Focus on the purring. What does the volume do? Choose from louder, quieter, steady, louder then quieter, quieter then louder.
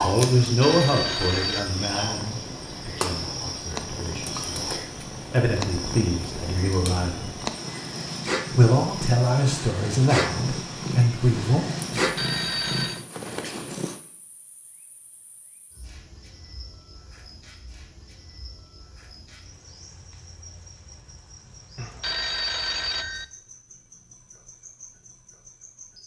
louder.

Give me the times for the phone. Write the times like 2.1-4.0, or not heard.
0.5-1.7, 11.9-13.1, 21.8-23.2.